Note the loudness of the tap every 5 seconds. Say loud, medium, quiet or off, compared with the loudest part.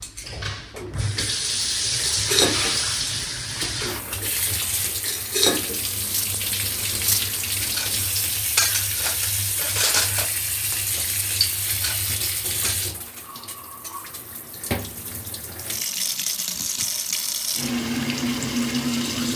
loud, loud, medium, loud.